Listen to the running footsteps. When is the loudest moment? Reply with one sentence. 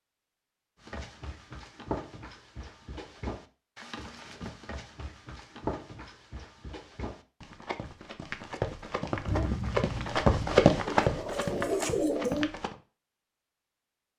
The loudest moment of the running footsteps is at 11 seconds.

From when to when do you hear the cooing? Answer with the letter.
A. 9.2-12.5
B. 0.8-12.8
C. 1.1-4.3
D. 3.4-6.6
A.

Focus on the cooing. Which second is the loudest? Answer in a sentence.
The volume of the cooing peaks at 12 seconds.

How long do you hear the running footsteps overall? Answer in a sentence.
You can hear the running footsteps for 12 seconds altogether.